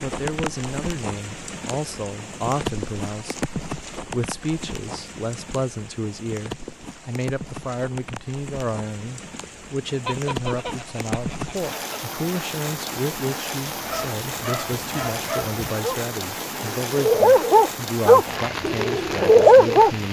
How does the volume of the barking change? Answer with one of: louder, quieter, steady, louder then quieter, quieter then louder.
louder.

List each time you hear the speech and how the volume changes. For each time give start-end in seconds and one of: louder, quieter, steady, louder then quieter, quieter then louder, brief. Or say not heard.
0.0-20.0 steady.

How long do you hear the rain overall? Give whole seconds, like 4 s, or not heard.
20 s.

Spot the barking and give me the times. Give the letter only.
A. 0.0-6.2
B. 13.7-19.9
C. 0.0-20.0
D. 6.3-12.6
B.